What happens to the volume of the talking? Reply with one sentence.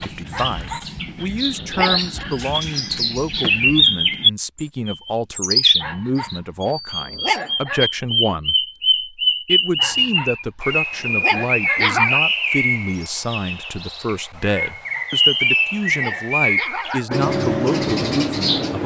The loudness of the talking stays about the same.